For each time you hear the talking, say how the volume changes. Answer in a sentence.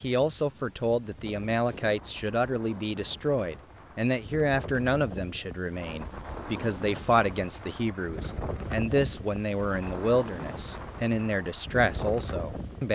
The talking can be heard from 0.0 to 12.9 s, at a steady volume.